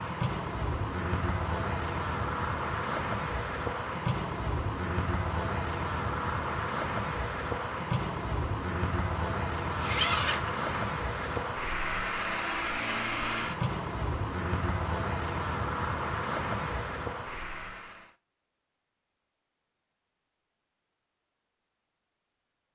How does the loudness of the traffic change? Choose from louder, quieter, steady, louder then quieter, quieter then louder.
steady.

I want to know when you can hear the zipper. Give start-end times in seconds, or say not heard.
9.7-11.4.